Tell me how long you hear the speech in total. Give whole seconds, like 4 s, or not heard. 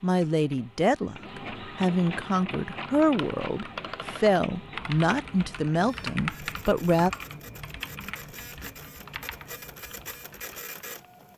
7 s.